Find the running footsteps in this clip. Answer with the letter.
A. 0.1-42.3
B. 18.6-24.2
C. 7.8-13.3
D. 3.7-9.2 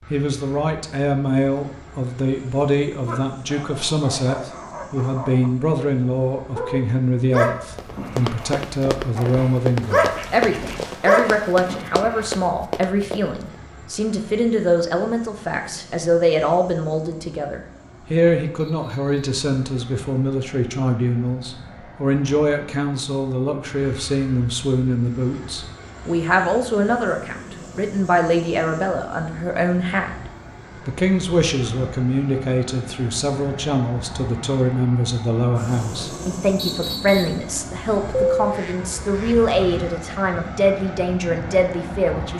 C.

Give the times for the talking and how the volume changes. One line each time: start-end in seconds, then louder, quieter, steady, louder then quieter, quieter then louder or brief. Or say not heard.
0.1-42.3 steady.